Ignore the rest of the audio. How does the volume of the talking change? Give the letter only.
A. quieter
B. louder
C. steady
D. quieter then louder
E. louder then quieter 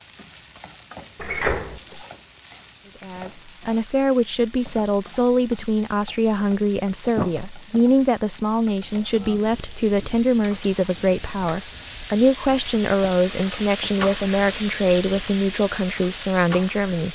C.